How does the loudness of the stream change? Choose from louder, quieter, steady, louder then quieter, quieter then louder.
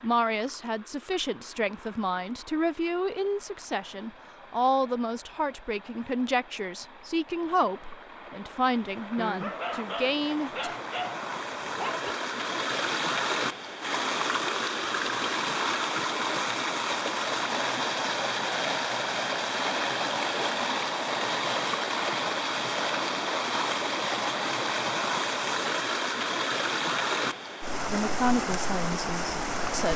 louder.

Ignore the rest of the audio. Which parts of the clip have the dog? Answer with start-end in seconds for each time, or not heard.
9.2-12.2.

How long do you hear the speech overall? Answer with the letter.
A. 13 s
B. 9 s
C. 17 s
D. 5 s
A.